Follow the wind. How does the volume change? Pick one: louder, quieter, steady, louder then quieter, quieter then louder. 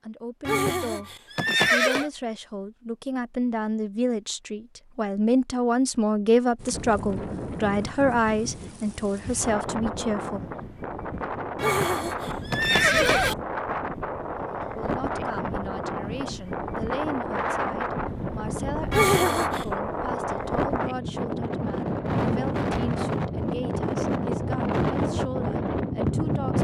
louder.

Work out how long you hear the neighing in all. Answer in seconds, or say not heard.
4 s.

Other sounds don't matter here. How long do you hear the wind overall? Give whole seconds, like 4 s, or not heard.
20 s.